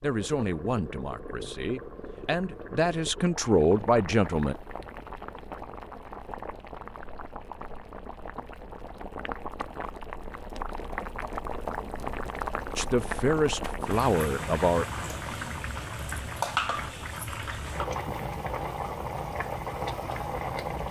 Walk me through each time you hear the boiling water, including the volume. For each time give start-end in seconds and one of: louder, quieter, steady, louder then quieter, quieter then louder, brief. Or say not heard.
0.0-20.8 louder.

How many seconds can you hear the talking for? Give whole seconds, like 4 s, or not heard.
7 s.